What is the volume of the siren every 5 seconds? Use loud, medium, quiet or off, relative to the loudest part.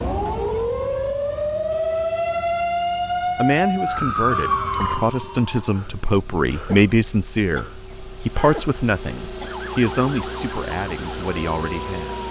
loud, quiet, quiet.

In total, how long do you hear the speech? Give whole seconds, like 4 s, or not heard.
9 s.